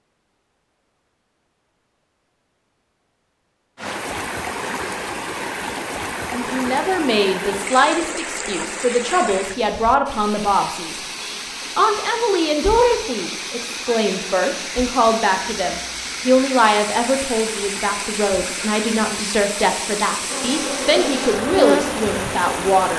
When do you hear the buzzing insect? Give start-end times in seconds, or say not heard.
20.3-22.9.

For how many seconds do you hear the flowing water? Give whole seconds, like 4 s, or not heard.
19 s.